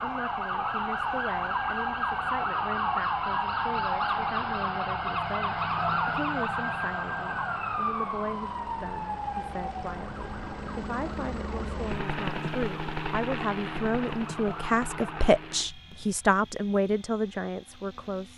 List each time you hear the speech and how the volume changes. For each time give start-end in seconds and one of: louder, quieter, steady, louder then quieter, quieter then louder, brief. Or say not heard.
0.0-18.3 louder.